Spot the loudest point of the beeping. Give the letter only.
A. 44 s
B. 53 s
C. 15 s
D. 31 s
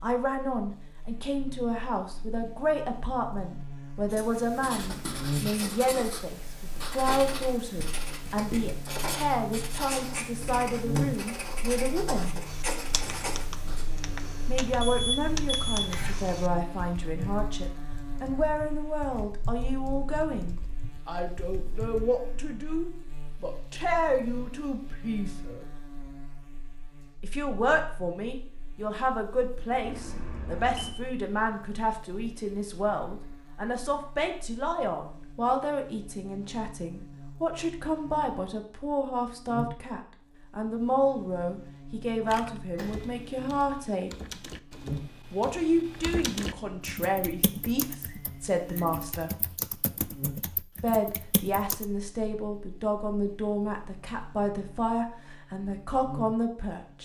C.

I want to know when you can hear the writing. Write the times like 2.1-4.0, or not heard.
4.1-13.8.